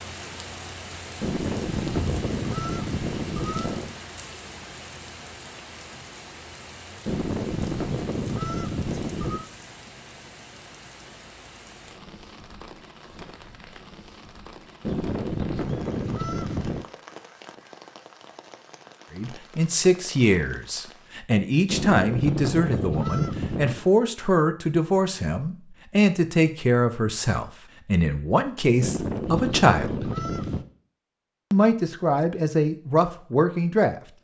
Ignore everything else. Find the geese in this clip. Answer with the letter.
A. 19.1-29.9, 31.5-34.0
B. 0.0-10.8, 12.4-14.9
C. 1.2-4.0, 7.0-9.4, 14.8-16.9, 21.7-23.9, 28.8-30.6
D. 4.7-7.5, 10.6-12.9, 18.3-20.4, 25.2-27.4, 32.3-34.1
C.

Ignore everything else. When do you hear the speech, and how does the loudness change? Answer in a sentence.
You can hear the speech from 19.1 to 29.9 s, at a steady volume; and briefly from 31.5 to 34.0 s.